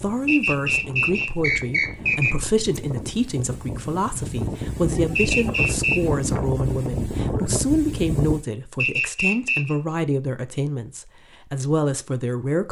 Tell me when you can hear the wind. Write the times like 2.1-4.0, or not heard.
0.0-8.4.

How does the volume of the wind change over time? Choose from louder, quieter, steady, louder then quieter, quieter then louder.
louder.